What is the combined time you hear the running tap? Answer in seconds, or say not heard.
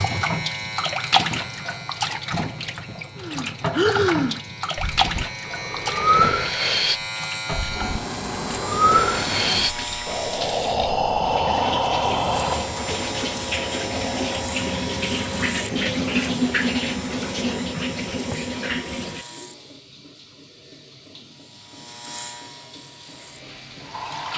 24 s.